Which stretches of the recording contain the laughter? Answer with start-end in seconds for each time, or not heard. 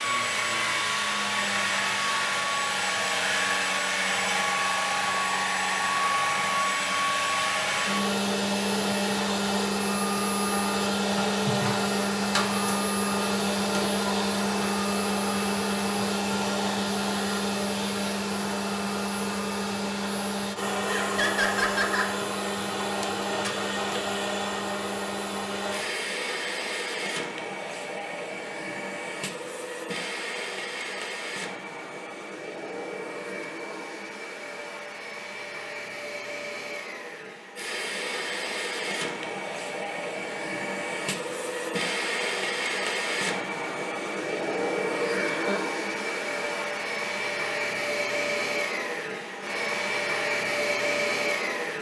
11.4-11.8, 20.9-22.1, 45.1-45.6.